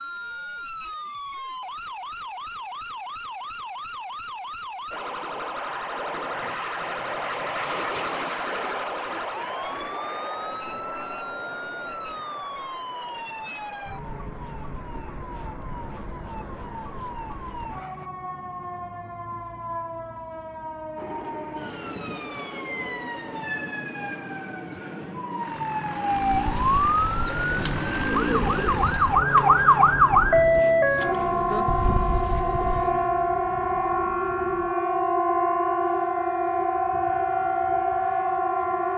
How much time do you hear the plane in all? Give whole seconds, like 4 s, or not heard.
27 s.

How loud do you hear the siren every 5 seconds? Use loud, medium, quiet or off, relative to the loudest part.
quiet, quiet, quiet, quiet, quiet, loud, loud, loud.